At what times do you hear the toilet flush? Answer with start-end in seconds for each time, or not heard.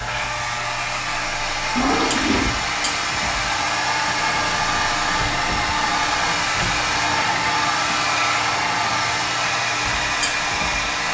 1.8-2.5.